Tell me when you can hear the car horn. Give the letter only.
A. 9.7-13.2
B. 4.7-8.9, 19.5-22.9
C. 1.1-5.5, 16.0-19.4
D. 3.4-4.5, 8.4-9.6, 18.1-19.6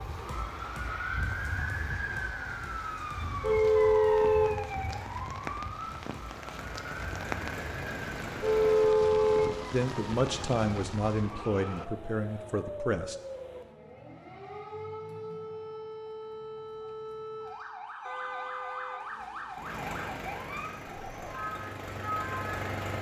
D.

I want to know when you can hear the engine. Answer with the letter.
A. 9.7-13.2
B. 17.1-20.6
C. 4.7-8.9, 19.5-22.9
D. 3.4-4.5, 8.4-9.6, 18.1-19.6
C.